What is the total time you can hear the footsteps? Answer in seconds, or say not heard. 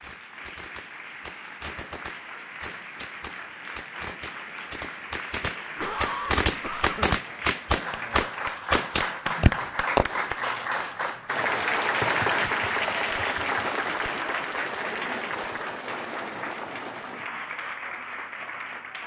not heard.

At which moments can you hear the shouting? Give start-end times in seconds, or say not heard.
not heard.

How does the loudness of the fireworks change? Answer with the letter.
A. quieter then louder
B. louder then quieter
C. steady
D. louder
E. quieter
D.